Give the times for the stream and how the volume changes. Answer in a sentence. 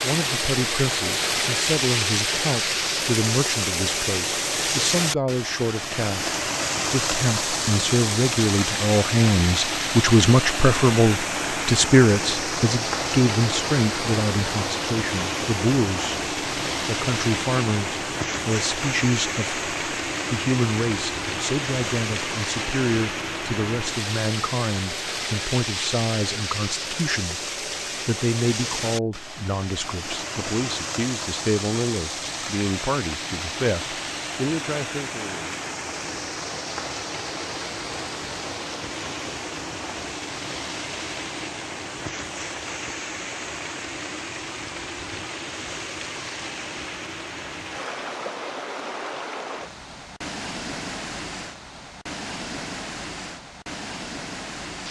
The stream can be heard from 0.0 to 54.8 s, getting quieter.